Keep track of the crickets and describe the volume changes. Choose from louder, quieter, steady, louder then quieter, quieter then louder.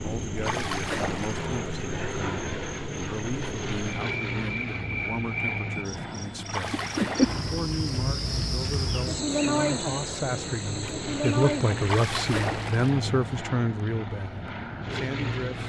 louder.